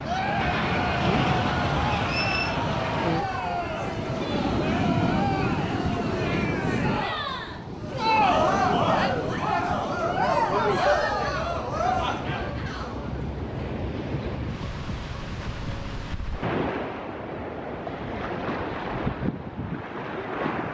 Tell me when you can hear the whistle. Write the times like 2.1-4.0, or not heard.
1.9-2.5.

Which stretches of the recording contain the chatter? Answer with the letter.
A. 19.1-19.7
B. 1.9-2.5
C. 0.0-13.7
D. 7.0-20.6
C.